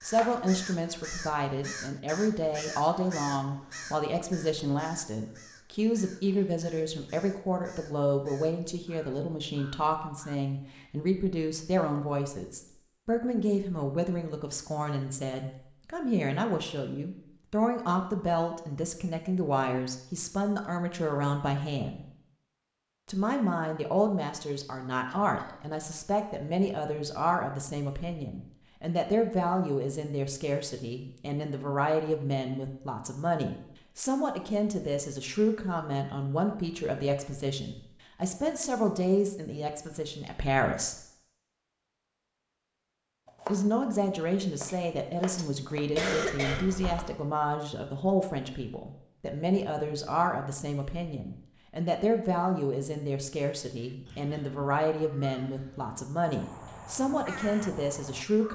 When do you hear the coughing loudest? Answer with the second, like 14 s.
46 s.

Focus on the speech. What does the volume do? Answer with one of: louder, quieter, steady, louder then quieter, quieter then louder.
steady.